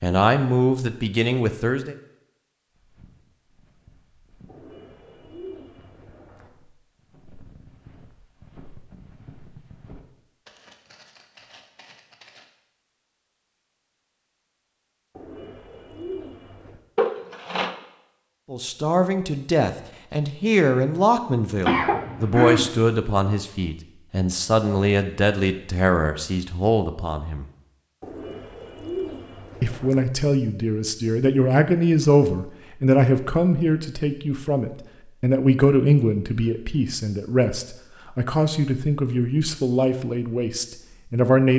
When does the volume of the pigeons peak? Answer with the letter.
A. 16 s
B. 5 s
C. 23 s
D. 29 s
D.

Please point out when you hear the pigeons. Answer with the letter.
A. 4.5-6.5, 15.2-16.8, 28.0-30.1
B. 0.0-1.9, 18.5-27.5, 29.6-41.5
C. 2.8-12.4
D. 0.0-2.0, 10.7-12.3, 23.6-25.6
A.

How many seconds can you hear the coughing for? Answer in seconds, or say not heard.
2 s.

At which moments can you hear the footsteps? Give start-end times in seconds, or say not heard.
2.8-12.4.